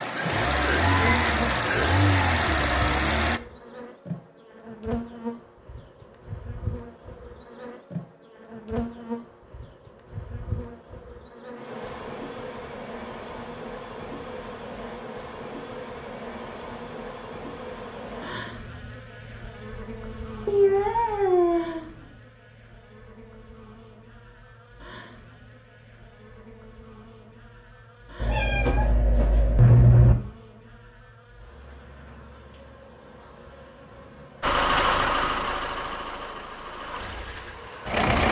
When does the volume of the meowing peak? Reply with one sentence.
The loudest moment of the meowing is at 30 seconds.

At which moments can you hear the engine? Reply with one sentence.
You can hear the engine from 0.0 to 3.4 s and from 34.4 to 38.2 s.